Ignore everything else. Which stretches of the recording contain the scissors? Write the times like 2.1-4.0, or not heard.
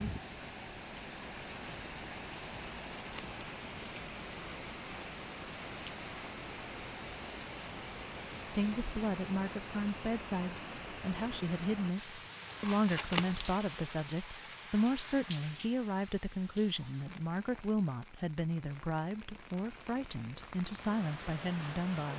2.7-3.5, 12.5-13.6.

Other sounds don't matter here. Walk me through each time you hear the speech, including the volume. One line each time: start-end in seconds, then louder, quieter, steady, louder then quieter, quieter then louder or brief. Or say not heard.
8.4-22.1 steady.